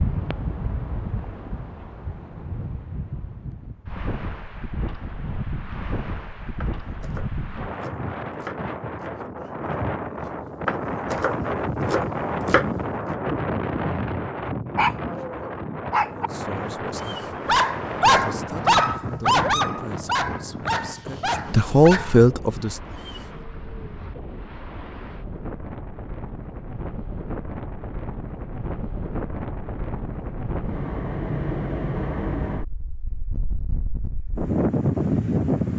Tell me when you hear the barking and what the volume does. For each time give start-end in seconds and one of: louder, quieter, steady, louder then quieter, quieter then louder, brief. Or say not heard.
14.8-23.2 louder then quieter.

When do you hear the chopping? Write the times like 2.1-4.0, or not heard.
6.6-13.2.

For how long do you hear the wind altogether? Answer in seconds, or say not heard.
36 s.